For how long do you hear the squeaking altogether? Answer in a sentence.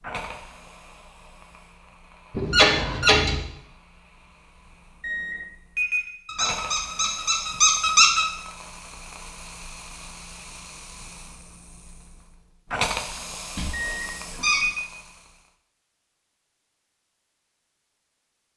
You can hear the squeaking for 4 seconds altogether.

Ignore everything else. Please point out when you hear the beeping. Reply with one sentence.
The beeping can be heard from 5.0 to 6.1 s and from 13.7 to 14.8 s.